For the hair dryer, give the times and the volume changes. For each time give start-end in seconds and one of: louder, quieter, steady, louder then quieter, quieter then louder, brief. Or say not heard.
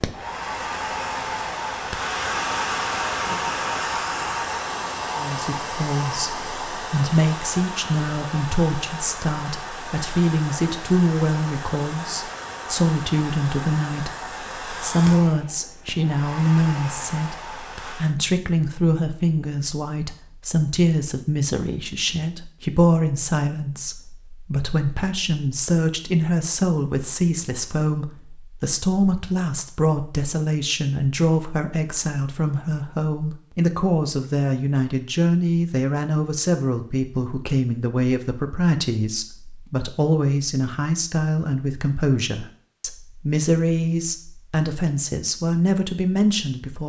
0.0-18.1 quieter.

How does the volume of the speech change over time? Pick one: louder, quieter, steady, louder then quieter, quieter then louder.
steady.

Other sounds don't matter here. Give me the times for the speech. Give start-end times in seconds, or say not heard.
5.2-46.8.